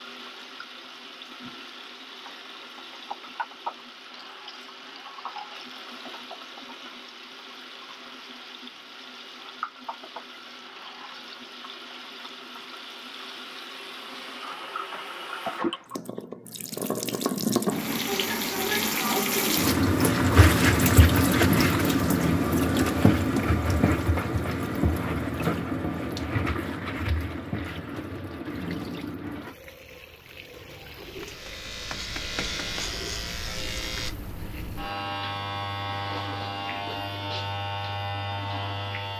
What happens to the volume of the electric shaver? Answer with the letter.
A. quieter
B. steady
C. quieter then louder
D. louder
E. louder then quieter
B.